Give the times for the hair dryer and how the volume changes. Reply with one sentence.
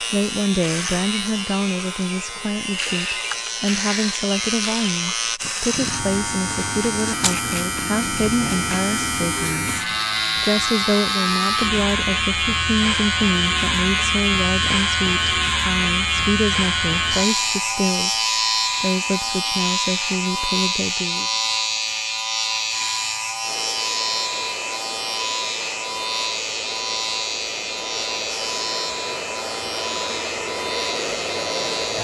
You can hear the hair dryer from 23.4 to 32.0 s, getting louder.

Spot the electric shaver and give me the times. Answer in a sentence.
You can hear the electric shaver from 0.0 to 32.0 s.